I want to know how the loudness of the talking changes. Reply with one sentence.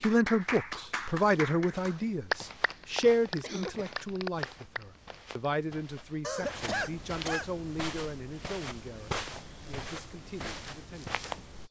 The volume of the talking goes down.